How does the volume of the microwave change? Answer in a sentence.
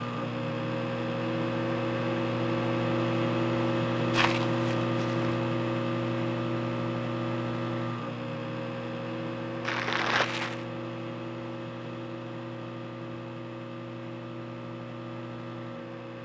The volume of the microwave goes down.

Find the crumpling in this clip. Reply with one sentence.
You can hear the crumpling from 4.1 to 5.3 s and from 9.7 to 10.7 s.